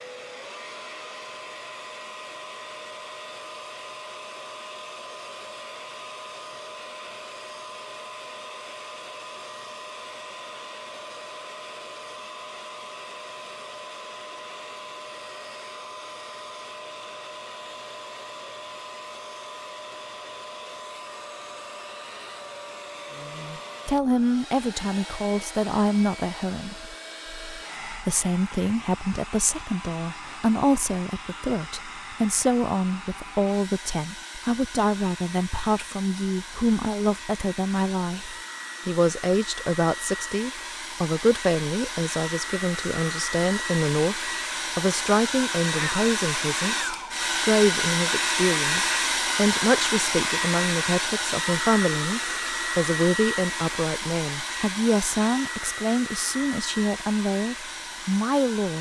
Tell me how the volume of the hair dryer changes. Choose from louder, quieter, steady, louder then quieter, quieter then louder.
louder.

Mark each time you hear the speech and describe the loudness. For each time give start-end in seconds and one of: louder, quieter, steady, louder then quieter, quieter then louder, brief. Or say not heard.
23.1-58.7 steady.